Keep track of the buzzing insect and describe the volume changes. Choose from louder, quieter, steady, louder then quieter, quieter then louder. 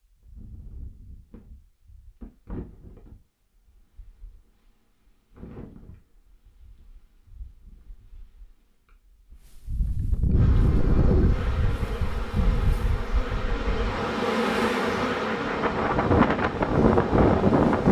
louder then quieter.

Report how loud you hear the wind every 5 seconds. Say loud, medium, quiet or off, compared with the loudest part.
quiet, quiet, medium, loud.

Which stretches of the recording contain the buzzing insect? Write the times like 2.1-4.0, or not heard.
10.3-17.8.